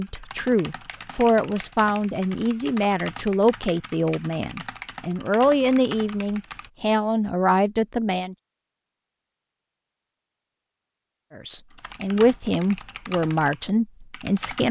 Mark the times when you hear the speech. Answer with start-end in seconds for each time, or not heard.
0.0-8.3, 11.3-14.6.